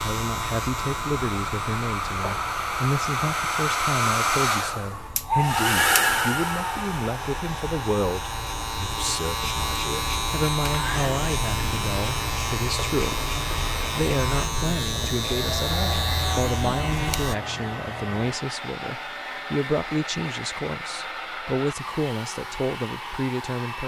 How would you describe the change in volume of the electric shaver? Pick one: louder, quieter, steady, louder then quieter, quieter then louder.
quieter then louder.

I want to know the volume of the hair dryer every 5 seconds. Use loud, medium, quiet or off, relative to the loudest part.
loud, loud, medium, medium, medium.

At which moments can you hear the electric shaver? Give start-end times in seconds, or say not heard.
0.0-17.4.